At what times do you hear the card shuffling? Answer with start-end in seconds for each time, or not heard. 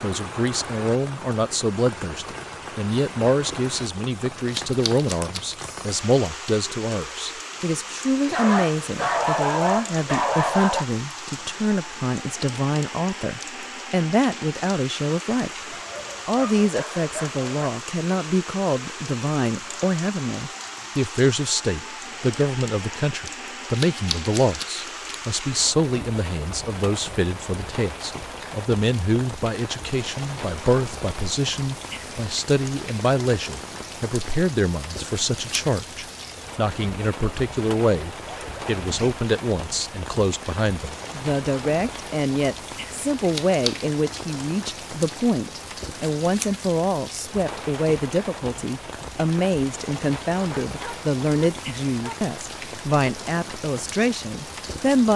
4.5-5.6, 23.7-25.1, 43.2-43.9.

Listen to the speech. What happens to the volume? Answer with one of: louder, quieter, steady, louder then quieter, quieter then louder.
steady.